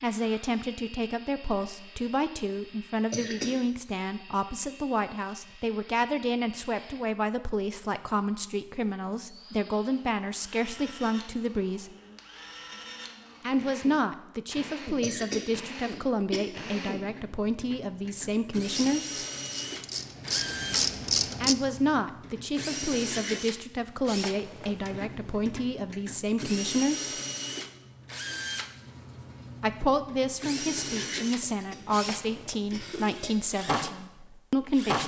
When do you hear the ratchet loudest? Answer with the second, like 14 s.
21 s.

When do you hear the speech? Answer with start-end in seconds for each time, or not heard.
0.0-11.9, 13.4-19.2, 21.4-27.1, 29.6-35.0.